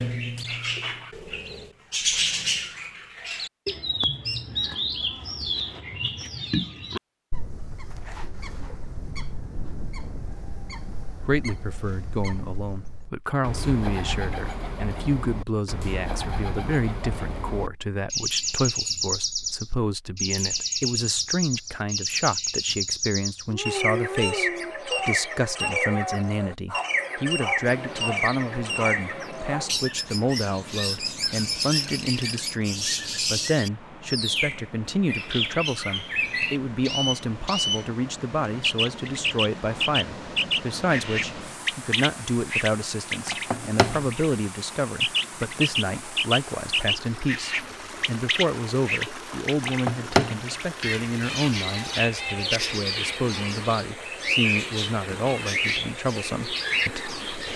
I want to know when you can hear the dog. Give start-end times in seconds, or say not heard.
23.5-29.8.